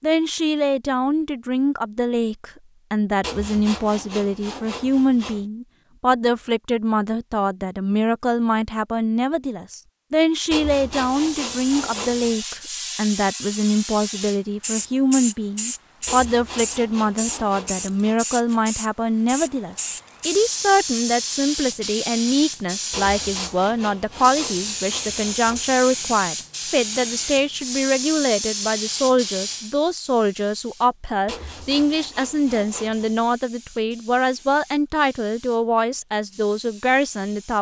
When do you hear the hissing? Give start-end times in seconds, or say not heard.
10.9-37.5.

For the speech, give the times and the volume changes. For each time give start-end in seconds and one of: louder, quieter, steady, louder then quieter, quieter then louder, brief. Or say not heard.
0.0-37.5 steady.